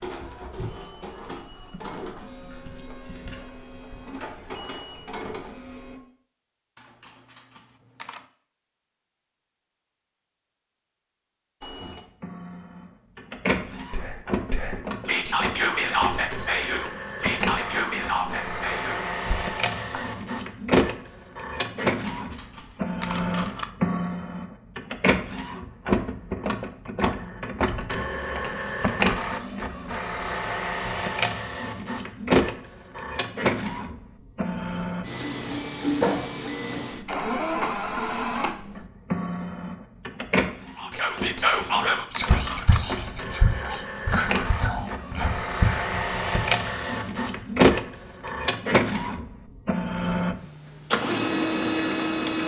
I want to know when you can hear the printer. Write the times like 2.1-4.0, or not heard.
0.0-6.0, 11.6-52.4.